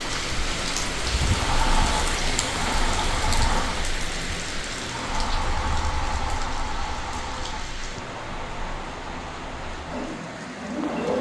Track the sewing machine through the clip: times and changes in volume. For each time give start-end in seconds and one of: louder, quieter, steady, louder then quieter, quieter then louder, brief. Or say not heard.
0.0-11.1 quieter.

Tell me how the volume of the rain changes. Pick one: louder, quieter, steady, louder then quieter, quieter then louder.
quieter.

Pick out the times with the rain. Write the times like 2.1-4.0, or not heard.
0.0-11.1.